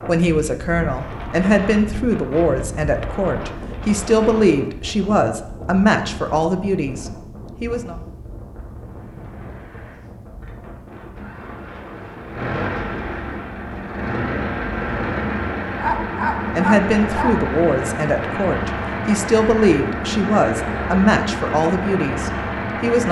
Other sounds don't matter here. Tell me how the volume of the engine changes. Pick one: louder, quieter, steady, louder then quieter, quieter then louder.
louder.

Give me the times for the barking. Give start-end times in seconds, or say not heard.
15.8-17.5.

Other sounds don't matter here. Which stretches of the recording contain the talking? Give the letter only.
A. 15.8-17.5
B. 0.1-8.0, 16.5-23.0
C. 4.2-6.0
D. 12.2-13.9
B.